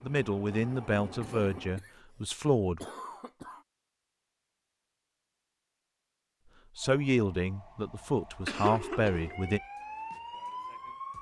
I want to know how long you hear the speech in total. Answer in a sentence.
You can hear the speech for 6 seconds altogether.